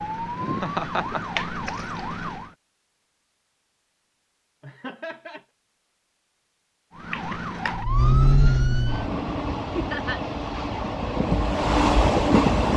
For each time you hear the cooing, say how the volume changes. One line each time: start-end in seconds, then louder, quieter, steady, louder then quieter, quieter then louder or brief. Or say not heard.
not heard.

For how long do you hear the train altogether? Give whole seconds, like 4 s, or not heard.
4 s.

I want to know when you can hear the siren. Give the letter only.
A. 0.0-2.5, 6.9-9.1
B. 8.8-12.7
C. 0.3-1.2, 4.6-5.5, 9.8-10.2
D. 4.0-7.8
A.